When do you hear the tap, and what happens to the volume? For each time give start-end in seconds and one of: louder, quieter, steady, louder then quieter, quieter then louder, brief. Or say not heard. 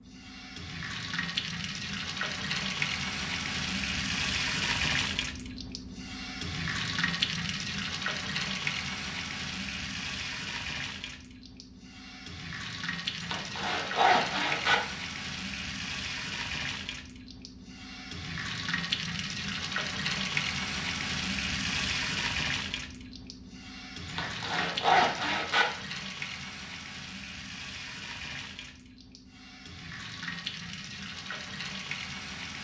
0.0-32.6 quieter.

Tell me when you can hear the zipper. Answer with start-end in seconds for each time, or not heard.
13.2-14.8, 24.1-25.6.